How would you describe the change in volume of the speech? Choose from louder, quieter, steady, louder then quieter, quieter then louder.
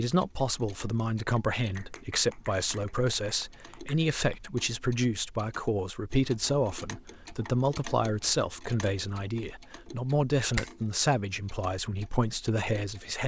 steady.